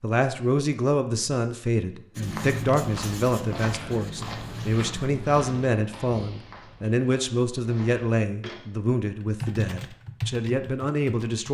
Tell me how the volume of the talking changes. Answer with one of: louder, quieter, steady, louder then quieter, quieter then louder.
steady.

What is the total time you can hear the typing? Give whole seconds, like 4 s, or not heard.
2 s.